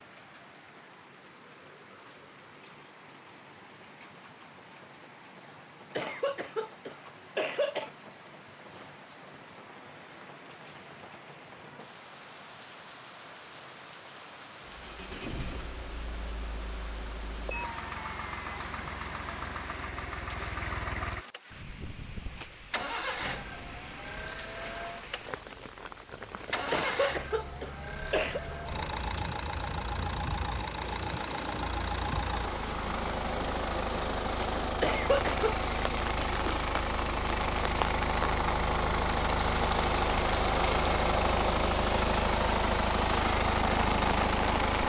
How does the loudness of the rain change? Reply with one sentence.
The loudness of the rain goes up.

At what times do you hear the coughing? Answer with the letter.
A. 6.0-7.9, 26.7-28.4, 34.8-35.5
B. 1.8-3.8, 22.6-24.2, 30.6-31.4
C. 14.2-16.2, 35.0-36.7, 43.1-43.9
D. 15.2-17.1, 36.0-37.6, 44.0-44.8
A.